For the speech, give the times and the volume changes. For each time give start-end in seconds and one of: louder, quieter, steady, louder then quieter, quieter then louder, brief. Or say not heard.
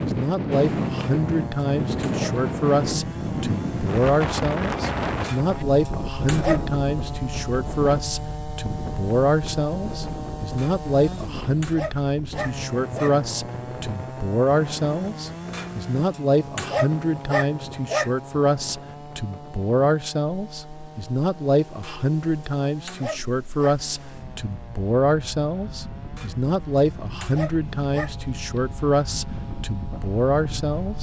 0.0-30.9 steady.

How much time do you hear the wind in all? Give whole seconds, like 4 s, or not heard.
31 s.